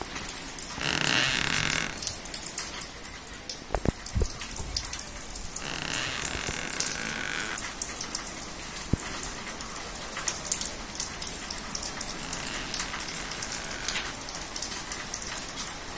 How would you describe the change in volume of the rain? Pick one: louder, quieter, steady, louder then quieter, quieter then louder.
steady.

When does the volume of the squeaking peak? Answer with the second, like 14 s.
1 s.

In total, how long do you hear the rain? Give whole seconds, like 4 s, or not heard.
16 s.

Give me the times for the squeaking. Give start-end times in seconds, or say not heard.
0.8-2.0, 5.6-7.6, 12.2-14.1.